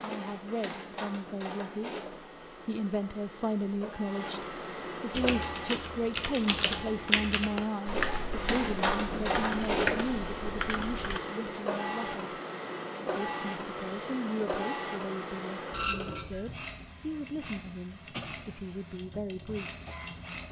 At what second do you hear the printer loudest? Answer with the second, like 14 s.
9 s.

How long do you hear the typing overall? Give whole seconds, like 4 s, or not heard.
6 s.